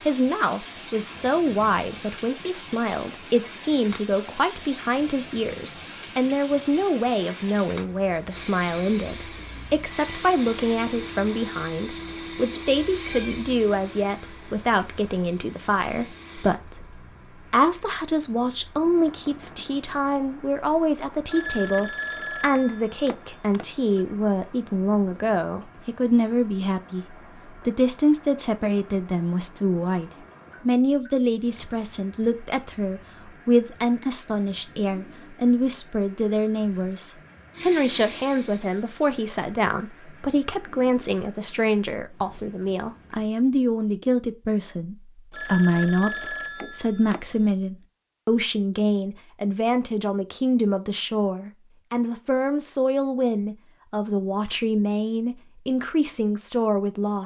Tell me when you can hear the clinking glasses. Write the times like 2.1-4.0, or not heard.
not heard.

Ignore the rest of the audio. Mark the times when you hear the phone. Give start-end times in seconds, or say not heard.
21.2-24.1, 45.3-47.5.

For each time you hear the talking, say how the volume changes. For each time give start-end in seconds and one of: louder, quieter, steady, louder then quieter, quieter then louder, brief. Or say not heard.
0.0-57.2 steady.